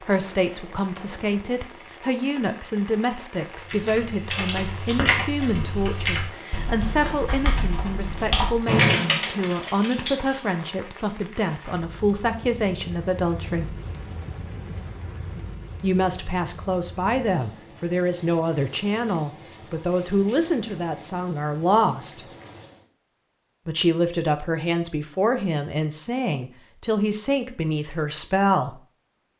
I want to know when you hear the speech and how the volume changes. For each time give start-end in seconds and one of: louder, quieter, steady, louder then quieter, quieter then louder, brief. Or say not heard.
0.0-13.8 steady
15.8-22.2 steady
23.6-28.8 steady.